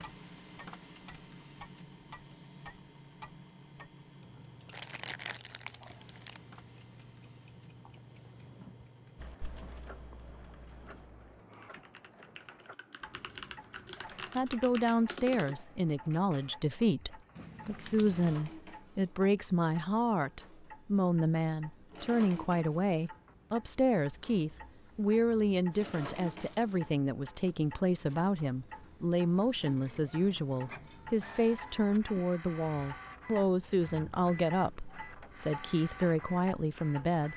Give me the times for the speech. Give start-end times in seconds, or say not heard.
14.3-37.3.